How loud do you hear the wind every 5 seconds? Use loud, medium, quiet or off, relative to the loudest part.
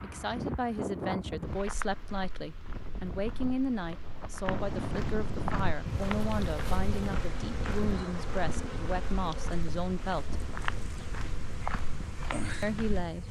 loud, loud, medium.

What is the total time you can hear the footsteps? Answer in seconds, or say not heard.
12 s.